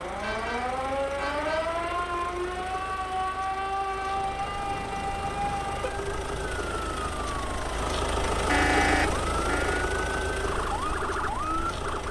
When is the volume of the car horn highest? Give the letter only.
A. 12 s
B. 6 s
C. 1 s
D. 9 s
D.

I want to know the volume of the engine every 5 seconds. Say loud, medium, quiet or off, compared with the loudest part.
medium, loud, loud.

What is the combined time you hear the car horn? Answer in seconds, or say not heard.
5 s.